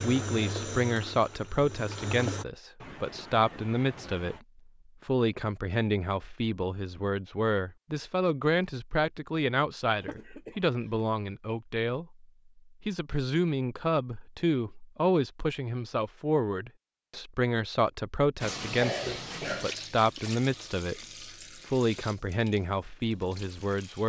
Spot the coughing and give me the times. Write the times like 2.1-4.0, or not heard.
2.8-4.5, 10.0-11.1, 18.8-19.8.